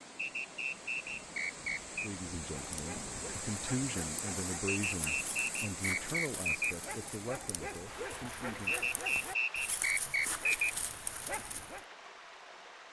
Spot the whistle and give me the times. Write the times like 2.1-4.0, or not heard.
0.1-2.0, 4.7-6.8, 8.7-10.7.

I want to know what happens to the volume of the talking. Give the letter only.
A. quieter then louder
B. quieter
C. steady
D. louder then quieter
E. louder
D.